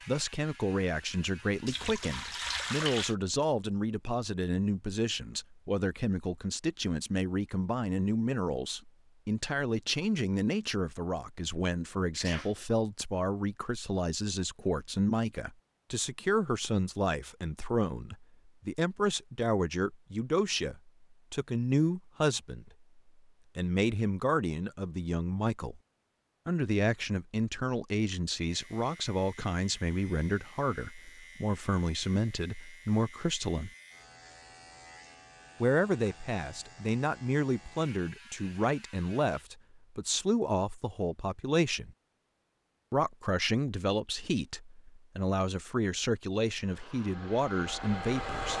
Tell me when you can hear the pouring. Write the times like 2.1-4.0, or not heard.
1.6-3.1.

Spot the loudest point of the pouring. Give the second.
3 s.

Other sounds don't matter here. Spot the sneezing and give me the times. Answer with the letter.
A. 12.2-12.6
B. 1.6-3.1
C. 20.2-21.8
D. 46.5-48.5
A.